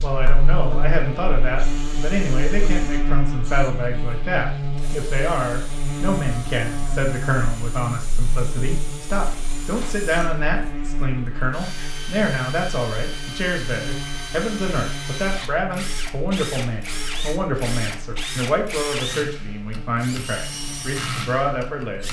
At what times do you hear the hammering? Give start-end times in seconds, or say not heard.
not heard.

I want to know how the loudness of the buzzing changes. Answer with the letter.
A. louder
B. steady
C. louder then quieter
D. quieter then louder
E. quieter
E.